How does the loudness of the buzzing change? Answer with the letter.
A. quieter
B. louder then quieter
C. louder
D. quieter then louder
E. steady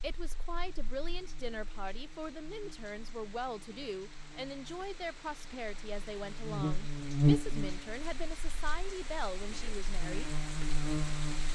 B.